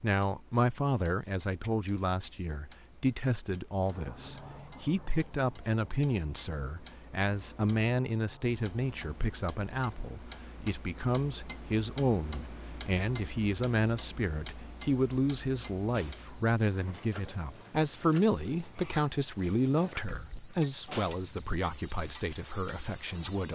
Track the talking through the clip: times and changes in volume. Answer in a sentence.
You can hear the talking from 0.0 to 23.4 s, at a steady volume.